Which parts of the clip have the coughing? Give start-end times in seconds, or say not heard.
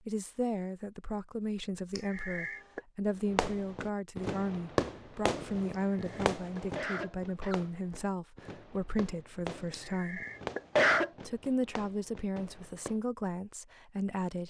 1.9-2.8, 5.7-7.7, 9.7-11.1.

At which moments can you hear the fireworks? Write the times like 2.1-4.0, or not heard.
3.3-13.0.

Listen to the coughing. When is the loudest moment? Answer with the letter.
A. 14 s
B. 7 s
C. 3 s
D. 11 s
D.